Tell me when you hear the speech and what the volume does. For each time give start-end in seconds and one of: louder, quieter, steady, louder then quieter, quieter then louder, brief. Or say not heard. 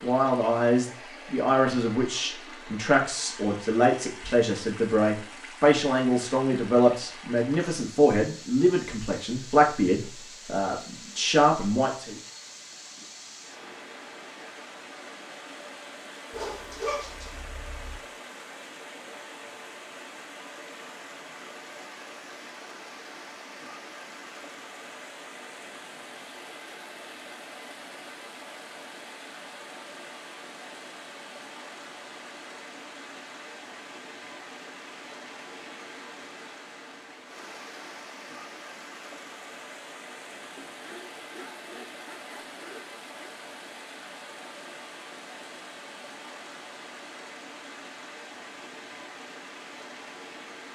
0.0-12.2 steady.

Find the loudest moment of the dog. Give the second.
17 s.